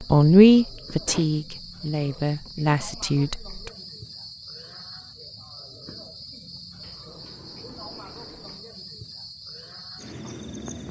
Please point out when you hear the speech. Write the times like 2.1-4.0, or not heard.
0.0-3.7.